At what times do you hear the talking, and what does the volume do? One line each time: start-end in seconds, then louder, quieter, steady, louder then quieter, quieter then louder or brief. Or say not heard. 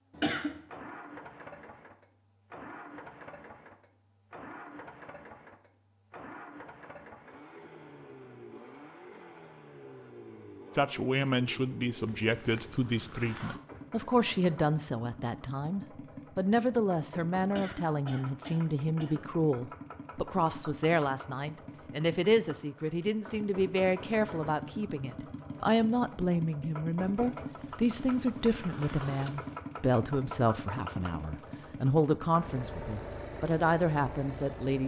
10.7-34.8 steady.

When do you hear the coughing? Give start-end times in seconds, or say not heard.
0.1-0.6, 17.4-19.3.